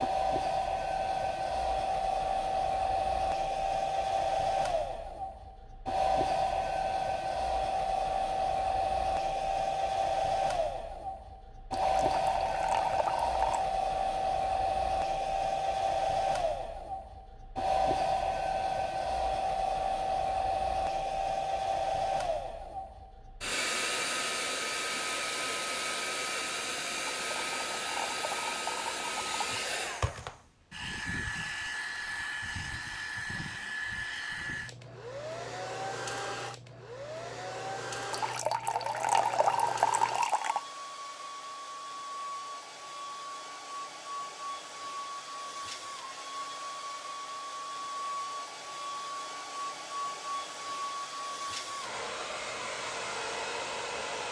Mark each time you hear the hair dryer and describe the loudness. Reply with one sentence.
You can hear the hair dryer from 0.0 to 54.2 s, getting quieter.